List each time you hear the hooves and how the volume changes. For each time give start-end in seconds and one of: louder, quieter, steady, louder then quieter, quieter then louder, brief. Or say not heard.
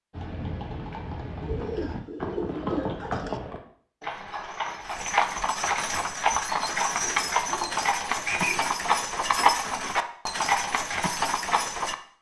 0.1-11.9 louder.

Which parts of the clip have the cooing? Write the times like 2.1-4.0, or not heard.
1.4-3.4, 7.0-8.7.